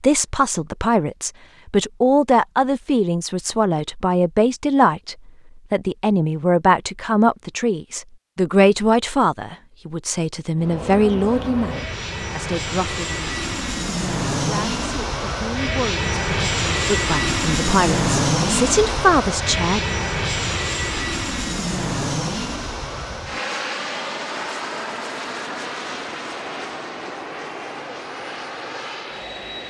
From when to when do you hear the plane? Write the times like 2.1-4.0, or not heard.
10.6-29.6.